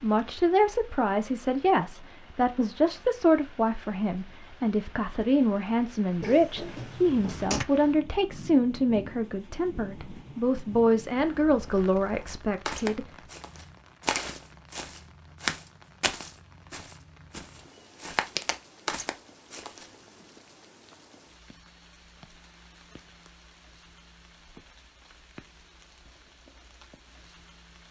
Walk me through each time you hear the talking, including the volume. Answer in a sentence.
You can hear the talking from 0.0 to 13.1 s, at a steady volume.